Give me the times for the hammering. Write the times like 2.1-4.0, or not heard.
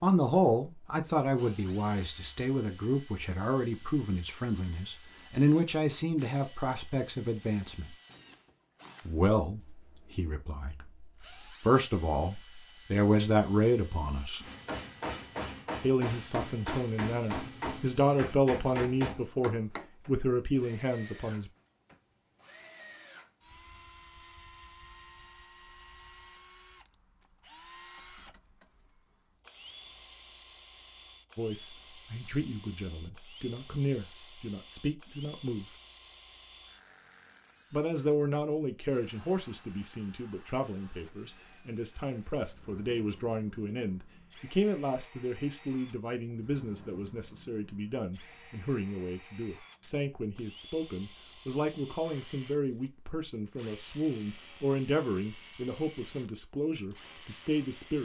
14.4-19.9.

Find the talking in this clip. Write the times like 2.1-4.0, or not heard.
0.0-7.9, 9.1-14.4, 15.8-21.5, 31.4-35.6, 37.7-57.9.